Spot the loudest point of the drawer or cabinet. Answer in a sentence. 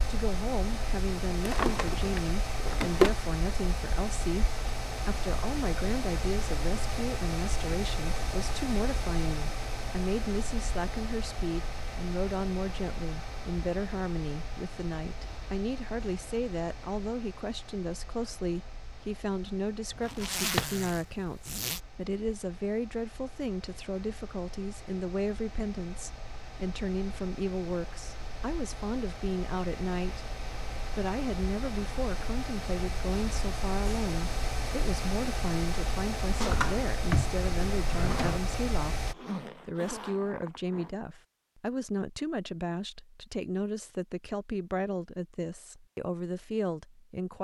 The loudest moment of the drawer or cabinet is at 3 seconds.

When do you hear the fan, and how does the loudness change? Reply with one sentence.
The fan can be heard from 0.0 to 39.1 s, getting quieter then louder.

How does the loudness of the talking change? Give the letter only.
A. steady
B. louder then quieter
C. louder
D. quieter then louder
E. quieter
A.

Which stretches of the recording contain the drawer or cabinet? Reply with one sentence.
You can hear the drawer or cabinet from 1.4 to 3.1 s, from 20.1 to 20.6 s and from 36.4 to 38.4 s.